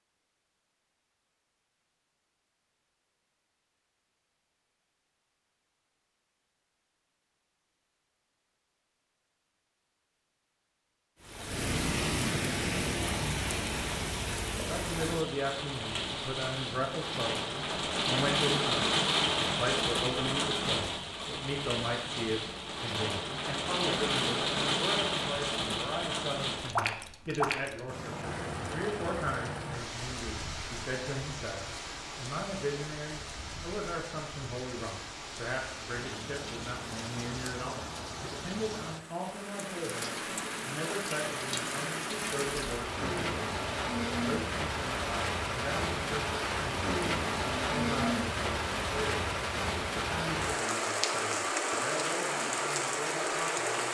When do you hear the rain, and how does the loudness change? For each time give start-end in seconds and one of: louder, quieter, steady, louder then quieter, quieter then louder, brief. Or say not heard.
11.2-53.9 quieter then louder.